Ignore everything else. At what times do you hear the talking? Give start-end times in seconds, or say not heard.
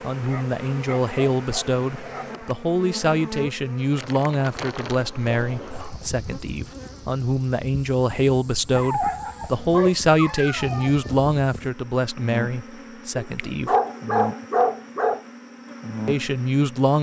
0.0-13.8, 16.1-16.9.